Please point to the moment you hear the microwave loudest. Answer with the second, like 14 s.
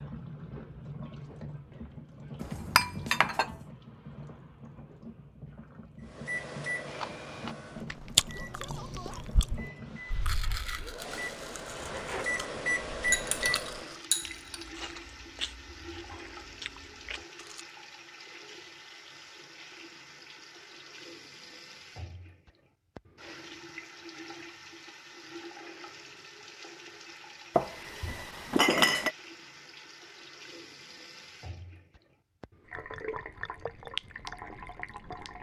13 s.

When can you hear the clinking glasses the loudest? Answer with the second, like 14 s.
29 s.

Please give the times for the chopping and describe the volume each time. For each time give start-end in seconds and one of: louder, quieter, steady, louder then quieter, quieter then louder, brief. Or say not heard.
not heard.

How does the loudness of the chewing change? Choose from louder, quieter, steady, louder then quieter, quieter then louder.
quieter.